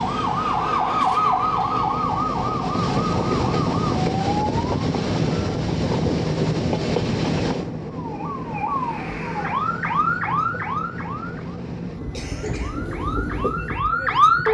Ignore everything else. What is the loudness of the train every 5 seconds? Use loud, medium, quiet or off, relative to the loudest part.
loud, loud, medium.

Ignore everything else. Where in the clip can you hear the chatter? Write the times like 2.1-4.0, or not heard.
not heard.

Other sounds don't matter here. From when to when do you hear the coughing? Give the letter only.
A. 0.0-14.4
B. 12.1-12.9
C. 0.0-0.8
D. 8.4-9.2
B.